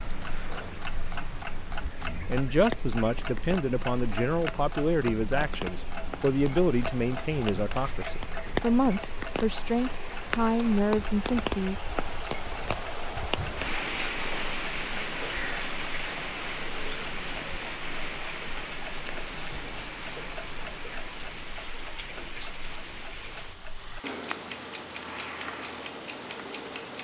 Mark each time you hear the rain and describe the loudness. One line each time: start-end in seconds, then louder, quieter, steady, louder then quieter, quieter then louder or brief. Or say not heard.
0.0-26.9 louder then quieter.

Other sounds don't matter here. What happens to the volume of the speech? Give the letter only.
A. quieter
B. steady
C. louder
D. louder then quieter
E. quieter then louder
B.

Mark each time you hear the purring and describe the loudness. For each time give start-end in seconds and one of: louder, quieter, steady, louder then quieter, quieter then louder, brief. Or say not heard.
not heard.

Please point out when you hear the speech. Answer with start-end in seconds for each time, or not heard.
2.2-11.8.